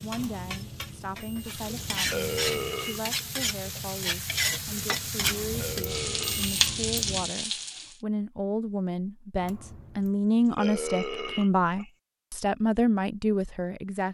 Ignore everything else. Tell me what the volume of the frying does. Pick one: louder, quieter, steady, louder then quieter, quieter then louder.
louder.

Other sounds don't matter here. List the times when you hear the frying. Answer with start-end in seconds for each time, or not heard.
0.0-8.0.